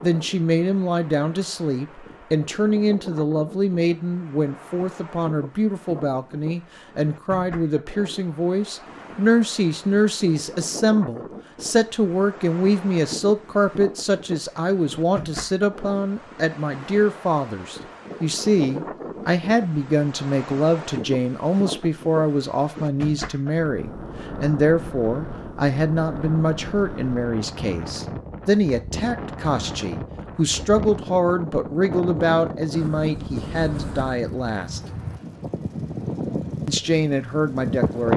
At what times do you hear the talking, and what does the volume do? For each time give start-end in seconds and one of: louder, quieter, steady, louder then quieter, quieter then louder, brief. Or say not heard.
0.0-34.8 steady
36.6-38.1 brief.